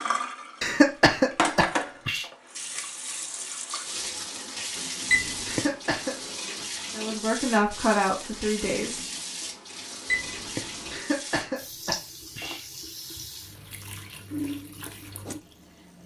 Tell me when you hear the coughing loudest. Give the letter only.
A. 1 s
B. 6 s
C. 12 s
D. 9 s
A.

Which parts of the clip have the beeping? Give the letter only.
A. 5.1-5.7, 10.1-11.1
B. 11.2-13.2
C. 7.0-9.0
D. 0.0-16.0
A.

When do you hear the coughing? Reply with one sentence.
The coughing can be heard from 0.6 to 2.2 s, from 5.5 to 6.2 s and from 10.9 to 12.7 s.